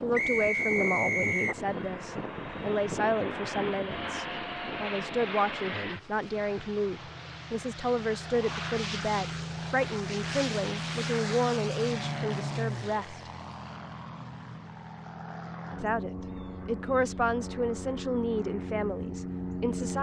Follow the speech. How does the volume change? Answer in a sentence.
The loudness of the speech stays about the same.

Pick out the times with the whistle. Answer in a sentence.
You can hear the whistle from 0.1 to 1.6 s.